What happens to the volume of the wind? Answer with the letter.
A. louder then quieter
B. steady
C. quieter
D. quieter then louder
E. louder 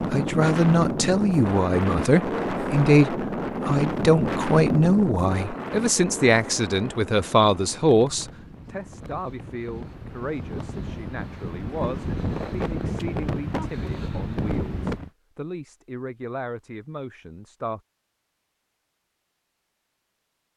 D.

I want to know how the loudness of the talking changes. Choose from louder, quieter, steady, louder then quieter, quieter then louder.
quieter.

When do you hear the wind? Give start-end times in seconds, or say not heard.
0.0-15.1.